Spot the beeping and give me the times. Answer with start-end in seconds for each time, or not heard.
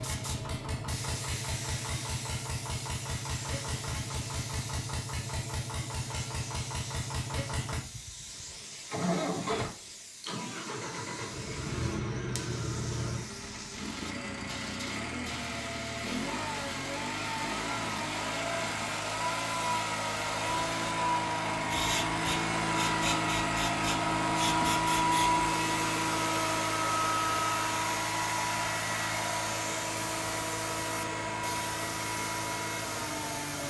not heard.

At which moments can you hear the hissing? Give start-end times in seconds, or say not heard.
0.0-33.6.